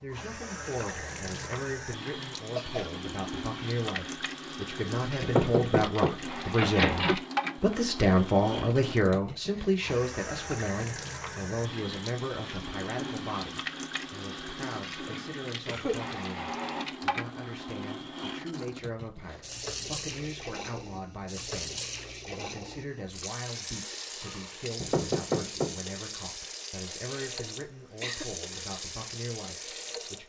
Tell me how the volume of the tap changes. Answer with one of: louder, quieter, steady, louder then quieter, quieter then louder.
steady.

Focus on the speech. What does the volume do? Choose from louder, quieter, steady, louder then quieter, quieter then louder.
louder then quieter.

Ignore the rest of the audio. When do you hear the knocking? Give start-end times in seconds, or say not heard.
5.2-7.2, 24.8-25.8.